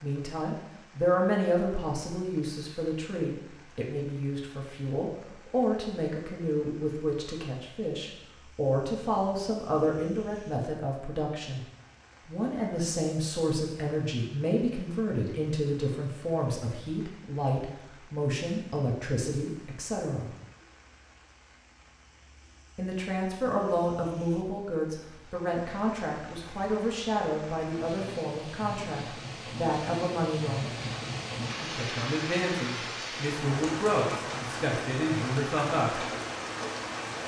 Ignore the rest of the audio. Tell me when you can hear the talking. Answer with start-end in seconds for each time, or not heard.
0.0-11.7, 12.2-20.3, 22.8-30.7, 31.6-36.0.